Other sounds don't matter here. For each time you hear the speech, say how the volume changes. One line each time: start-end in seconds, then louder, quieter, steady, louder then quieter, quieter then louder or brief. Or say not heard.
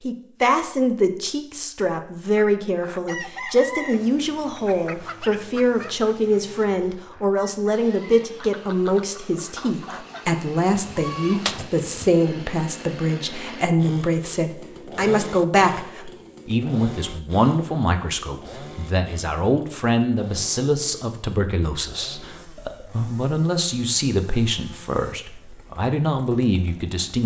0.0-27.2 steady.